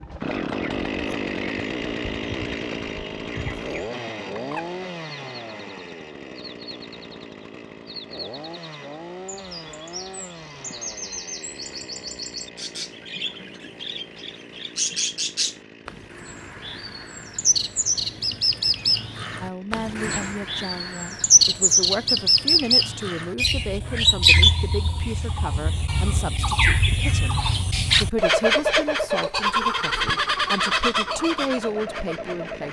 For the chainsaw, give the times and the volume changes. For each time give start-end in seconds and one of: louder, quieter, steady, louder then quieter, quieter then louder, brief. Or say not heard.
0.0-21.1 quieter
29.8-32.6 brief.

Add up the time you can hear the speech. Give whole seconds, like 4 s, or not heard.
13 s.